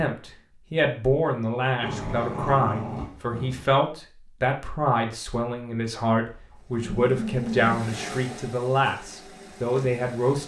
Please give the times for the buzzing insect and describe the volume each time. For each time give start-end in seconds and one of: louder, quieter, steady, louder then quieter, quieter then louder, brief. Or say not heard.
not heard.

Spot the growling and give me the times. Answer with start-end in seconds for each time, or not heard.
1.8-3.7, 6.3-7.8.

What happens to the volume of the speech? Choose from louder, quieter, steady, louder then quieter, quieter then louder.
steady.